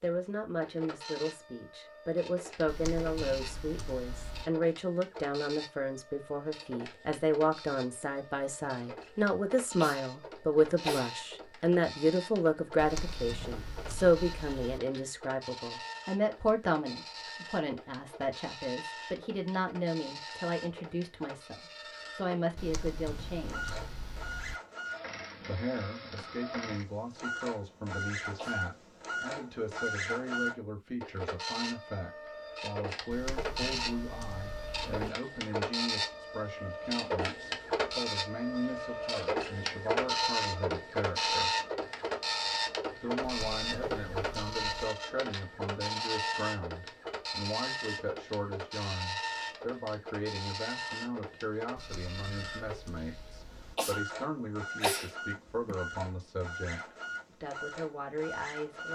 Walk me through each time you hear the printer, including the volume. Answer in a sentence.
You can hear the printer from 0.0 to 58.8 s, getting louder then quieter.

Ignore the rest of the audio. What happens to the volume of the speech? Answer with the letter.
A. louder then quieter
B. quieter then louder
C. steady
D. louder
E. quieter
E.